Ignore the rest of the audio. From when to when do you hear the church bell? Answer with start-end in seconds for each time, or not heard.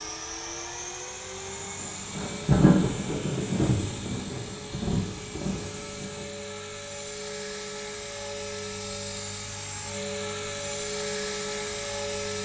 not heard.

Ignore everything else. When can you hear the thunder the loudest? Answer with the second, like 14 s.
3 s.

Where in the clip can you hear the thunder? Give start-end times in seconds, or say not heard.
1.8-6.2.